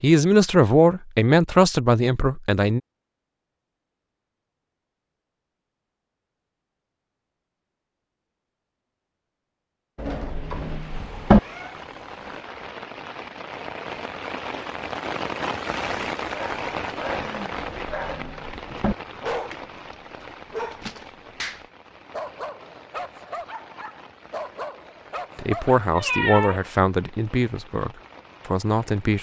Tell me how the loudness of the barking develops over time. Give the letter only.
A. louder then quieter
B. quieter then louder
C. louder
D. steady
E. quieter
D.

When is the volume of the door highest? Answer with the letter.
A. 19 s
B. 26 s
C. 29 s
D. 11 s
D.